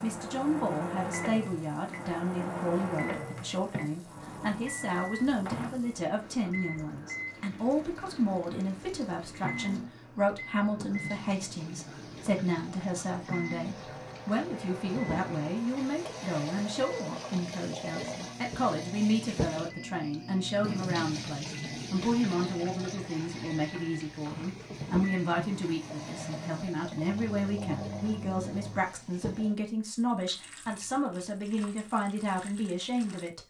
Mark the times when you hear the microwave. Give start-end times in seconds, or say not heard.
0.0-28.8.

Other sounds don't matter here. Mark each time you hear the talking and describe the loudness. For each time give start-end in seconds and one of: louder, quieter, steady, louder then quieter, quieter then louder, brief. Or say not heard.
0.0-33.4 steady.